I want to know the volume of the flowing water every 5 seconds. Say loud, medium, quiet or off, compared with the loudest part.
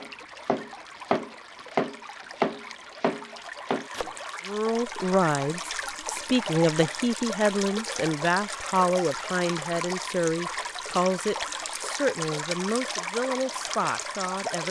medium, loud, loud.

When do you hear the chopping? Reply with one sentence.
The chopping can be heard from 0.0 to 4.2 s.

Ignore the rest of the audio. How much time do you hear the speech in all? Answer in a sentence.
You can hear the speech for 10 seconds altogether.